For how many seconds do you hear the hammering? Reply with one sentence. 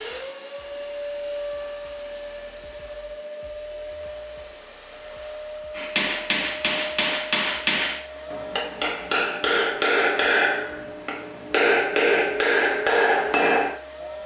The hammering can be heard for 8 seconds in total.